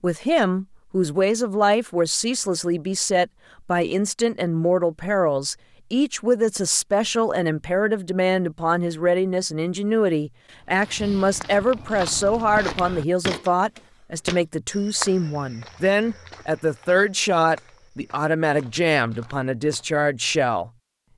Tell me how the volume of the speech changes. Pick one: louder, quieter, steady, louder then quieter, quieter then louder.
steady.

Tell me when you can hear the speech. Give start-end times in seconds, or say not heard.
0.0-20.7.